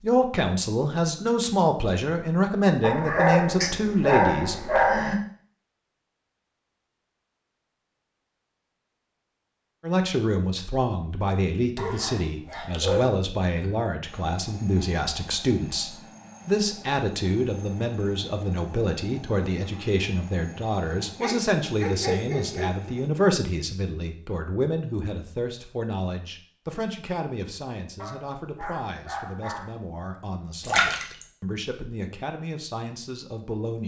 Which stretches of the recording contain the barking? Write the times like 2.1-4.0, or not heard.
2.8-5.2, 11.8-13.7, 21.2-22.9, 28.0-29.8.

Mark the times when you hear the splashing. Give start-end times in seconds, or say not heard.
30.6-31.2.